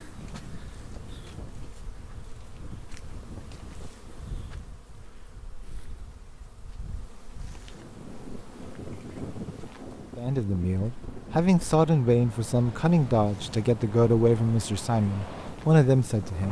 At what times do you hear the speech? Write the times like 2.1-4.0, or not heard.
10.2-16.4.